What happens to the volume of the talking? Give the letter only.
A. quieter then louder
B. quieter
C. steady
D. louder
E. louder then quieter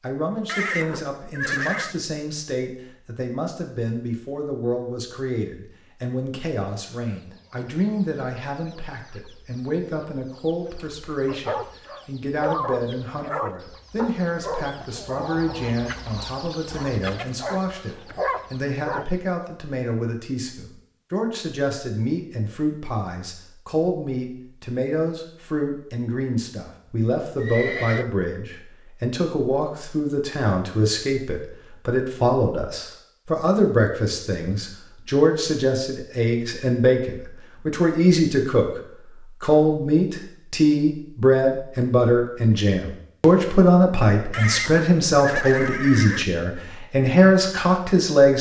D.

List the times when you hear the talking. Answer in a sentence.
You can hear the talking from 0.0 to 38.8 s and from 39.4 to 48.3 s.